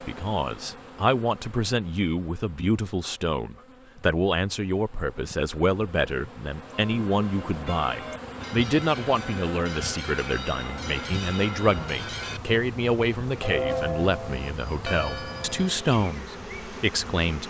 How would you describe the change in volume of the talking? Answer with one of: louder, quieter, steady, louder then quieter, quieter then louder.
steady.